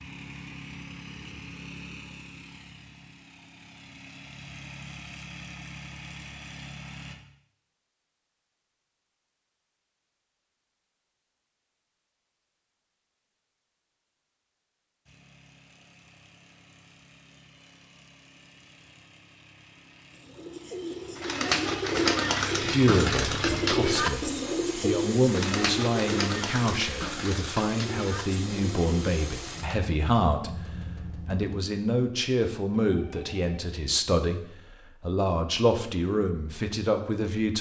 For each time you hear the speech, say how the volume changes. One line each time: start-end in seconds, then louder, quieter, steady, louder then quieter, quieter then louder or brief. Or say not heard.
22.6-37.5 steady.